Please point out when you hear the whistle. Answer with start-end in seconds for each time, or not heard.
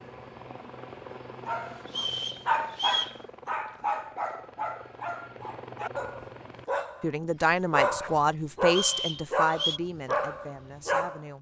1.9-3.1, 8.7-9.8.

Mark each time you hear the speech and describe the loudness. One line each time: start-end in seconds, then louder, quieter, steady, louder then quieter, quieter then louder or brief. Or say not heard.
7.0-11.3 quieter.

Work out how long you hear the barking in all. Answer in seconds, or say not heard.
10 s.